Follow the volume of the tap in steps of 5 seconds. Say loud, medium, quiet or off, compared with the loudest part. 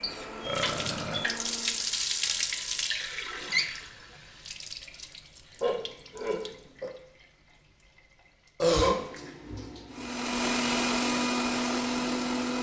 loud, quiet, quiet.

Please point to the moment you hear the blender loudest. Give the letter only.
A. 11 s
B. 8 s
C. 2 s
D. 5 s
A.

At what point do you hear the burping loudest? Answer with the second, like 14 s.
9 s.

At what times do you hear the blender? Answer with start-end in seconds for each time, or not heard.
0.0-1.9, 9.9-12.5.